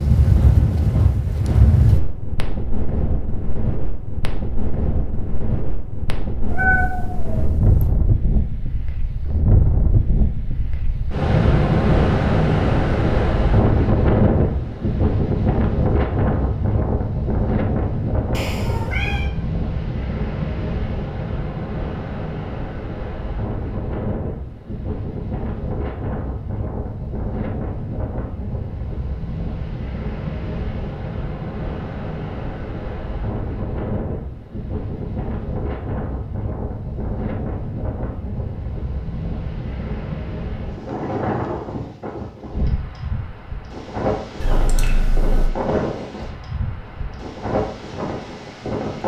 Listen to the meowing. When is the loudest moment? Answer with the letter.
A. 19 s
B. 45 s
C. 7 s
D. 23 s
C.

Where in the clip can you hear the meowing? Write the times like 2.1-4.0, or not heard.
6.5-7.8, 18.3-19.3, 44.4-45.5.